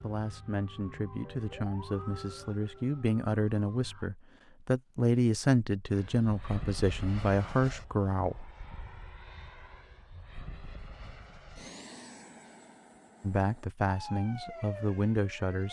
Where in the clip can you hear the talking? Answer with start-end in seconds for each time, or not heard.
0.0-8.6, 13.2-15.6.